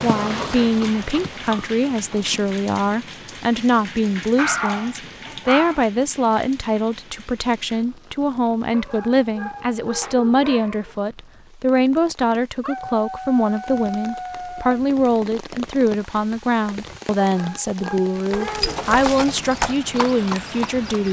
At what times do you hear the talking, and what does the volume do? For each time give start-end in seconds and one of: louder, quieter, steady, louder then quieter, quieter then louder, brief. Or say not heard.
0.0-21.0 steady.